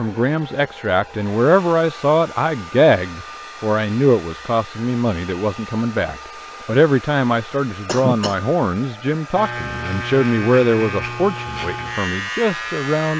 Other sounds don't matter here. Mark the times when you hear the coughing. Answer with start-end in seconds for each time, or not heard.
7.8-8.3.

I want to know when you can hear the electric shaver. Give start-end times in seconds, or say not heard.
9.3-13.1.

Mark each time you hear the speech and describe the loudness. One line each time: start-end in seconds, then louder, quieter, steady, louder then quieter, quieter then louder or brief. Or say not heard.
0.0-13.1 steady.